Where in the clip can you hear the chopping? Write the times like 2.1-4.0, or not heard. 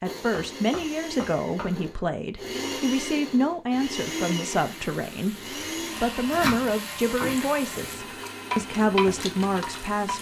0.3-1.9, 6.2-8.1.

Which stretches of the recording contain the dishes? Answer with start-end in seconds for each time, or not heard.
not heard.